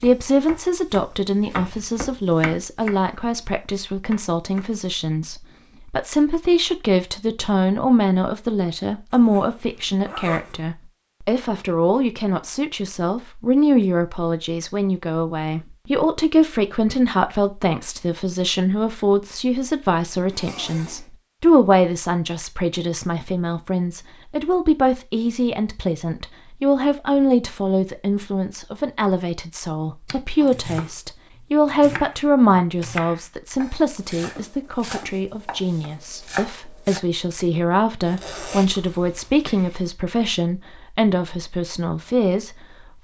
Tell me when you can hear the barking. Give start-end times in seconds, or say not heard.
not heard.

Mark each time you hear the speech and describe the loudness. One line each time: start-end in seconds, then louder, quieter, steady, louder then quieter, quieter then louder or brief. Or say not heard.
0.0-42.5 steady.